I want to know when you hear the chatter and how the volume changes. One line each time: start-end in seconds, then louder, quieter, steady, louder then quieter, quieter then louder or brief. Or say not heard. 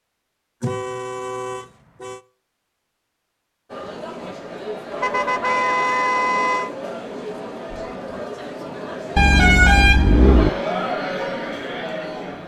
3.6-12.4 louder.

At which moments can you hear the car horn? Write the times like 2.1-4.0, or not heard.
0.6-2.2, 4.9-6.7, 9.2-10.5.